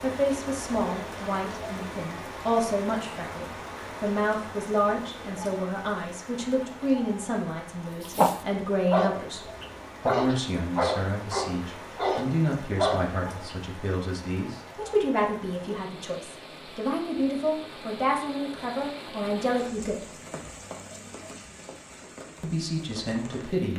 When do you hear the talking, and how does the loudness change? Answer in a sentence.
You can hear the talking from 0.0 to 20.1 s, at a steady volume; and briefly from 22.4 to 23.7 s.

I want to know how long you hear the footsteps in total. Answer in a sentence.
The footsteps can't be heard in this clip.